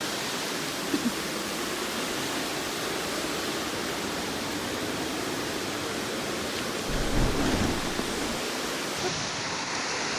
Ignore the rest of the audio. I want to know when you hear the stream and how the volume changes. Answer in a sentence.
You can hear the stream from 0.0 to 10.1 s, at a steady volume.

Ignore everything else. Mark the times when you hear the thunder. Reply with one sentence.
The thunder can be heard from 6.8 to 8.4 s.